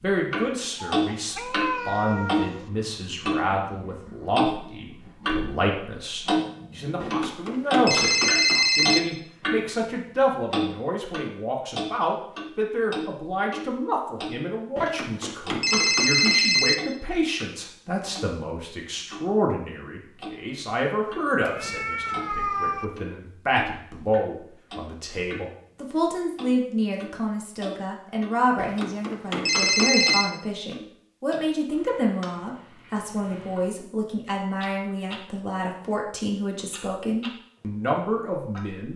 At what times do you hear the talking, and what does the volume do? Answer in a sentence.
The talking can be heard from 0.0 to 38.9 s, at a steady volume.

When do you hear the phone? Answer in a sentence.
The phone can be heard from 7.0 to 9.0 s, from 14.8 to 16.8 s and from 28.6 to 30.3 s.